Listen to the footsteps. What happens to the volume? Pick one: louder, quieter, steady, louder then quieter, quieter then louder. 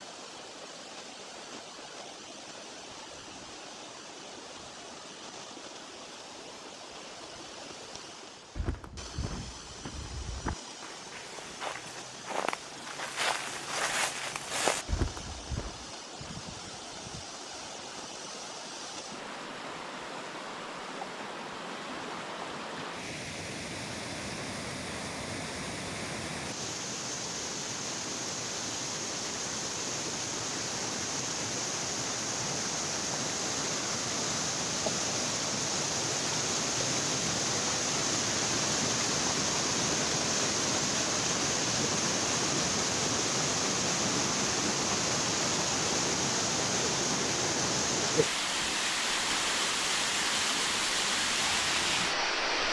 louder.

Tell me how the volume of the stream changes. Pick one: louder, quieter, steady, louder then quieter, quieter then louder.
louder.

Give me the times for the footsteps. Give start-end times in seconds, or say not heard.
8.6-15.8.